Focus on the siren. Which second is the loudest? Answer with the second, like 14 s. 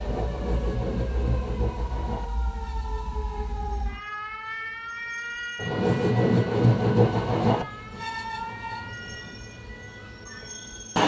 5 s.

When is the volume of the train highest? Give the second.
7 s.